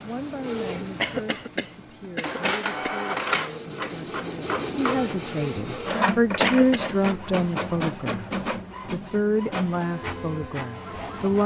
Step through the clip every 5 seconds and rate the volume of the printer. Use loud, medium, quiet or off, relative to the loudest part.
loud, loud, medium.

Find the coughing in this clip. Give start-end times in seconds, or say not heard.
1.0-3.0, 6.4-7.0.